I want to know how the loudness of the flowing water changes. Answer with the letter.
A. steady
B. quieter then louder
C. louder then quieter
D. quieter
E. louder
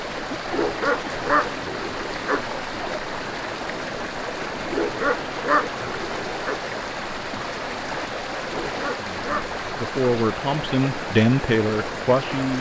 A.